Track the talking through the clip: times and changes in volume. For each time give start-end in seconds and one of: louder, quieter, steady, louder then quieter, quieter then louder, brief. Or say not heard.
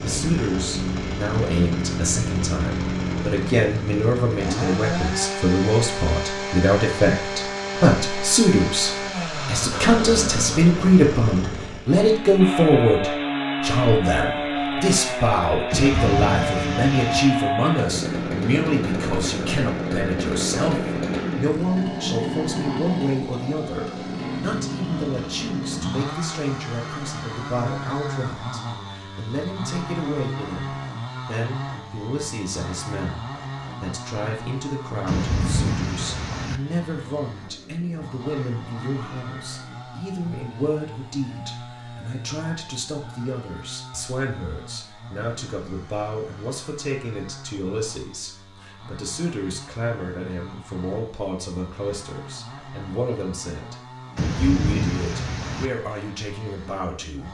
0.0-57.2 quieter.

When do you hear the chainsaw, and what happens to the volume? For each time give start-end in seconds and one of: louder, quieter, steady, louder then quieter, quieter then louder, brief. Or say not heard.
0.0-57.2 quieter.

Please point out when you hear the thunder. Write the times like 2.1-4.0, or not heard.
15.7-17.2, 35.0-36.6, 54.1-55.7.